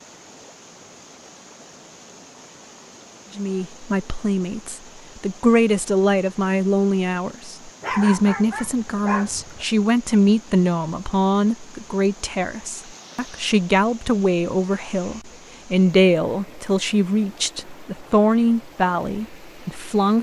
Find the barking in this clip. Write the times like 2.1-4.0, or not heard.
7.8-9.7.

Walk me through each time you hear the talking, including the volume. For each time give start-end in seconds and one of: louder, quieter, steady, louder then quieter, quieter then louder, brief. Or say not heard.
3.4-20.1 steady.